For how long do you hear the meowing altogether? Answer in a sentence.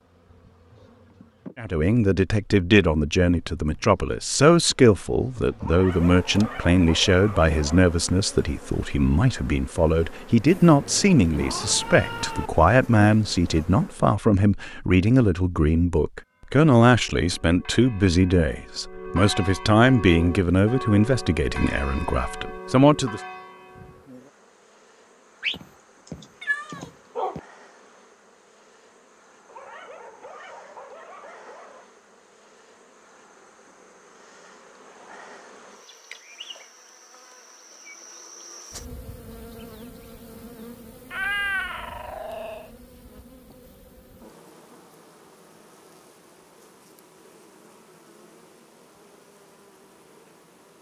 The meowing can be heard for 6 seconds in total.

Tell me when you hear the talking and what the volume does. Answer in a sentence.
The talking can be heard from 1.6 to 23.2 s, at a steady volume.